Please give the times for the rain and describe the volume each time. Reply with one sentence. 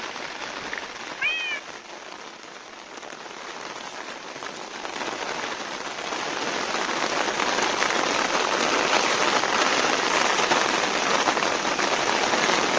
You can hear the rain from 0.0 to 12.7 s, getting louder.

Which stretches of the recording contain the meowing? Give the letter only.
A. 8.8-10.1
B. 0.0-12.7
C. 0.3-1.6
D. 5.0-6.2
C.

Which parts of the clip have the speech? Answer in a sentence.
You can't hear the speech here.